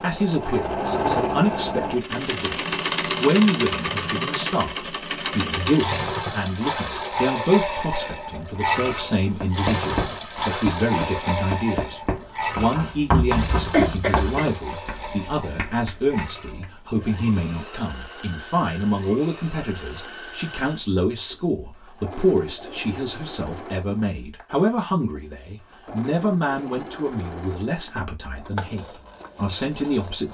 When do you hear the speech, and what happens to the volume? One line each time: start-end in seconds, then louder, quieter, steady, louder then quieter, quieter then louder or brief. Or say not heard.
0.0-30.2 steady.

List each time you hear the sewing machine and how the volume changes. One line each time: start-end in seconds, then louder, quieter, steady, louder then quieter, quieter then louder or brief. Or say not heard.
0.0-30.2 quieter.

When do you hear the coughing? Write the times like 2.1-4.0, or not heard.
13.6-14.4.